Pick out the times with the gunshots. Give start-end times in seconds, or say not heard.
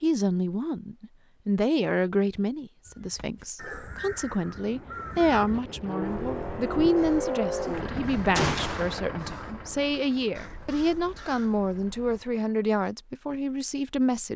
8.3-9.0.